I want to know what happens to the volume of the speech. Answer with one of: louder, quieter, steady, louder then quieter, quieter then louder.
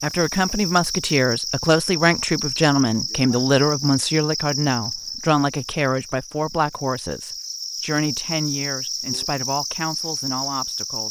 quieter.